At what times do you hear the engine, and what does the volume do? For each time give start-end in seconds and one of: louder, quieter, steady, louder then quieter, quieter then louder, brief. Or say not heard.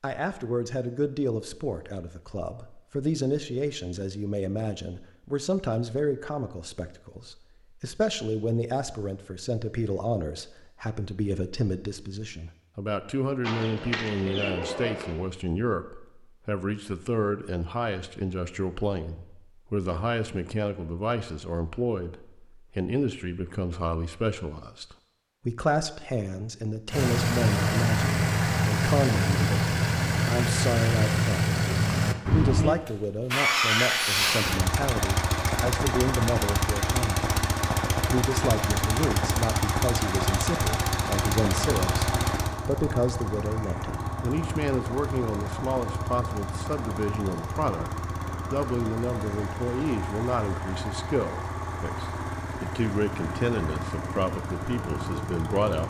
26.9-55.8 quieter.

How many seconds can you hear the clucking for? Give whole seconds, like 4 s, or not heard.
2 s.